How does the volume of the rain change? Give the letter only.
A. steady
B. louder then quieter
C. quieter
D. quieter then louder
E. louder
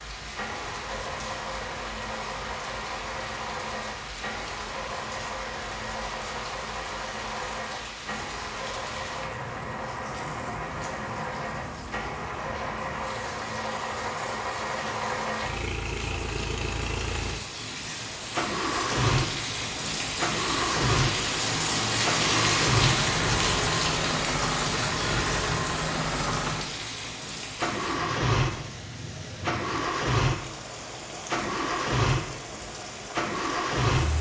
B.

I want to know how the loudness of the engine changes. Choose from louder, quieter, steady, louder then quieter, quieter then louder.
louder.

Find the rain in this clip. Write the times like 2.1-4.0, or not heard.
0.0-34.1.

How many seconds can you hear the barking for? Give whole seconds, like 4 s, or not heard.
not heard.